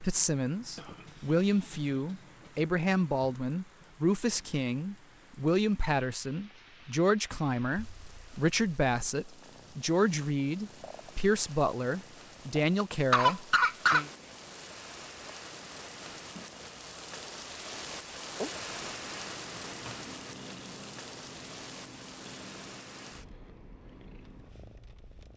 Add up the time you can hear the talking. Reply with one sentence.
You can hear the talking for 14 seconds altogether.